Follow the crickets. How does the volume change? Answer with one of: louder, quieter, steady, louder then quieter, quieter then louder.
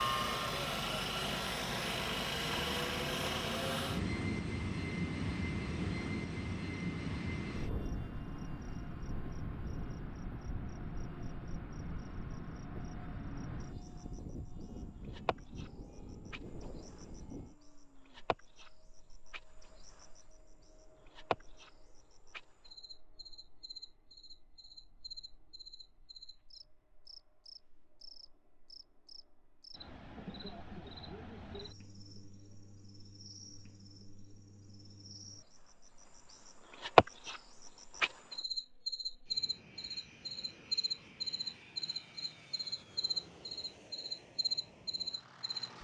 quieter then louder.